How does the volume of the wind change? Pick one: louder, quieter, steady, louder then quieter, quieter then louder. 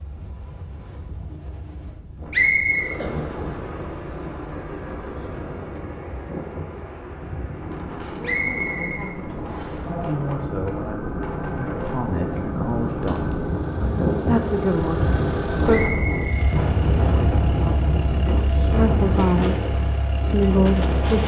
louder.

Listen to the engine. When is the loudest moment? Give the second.
15 s.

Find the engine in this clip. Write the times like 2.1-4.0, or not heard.
2.6-21.2.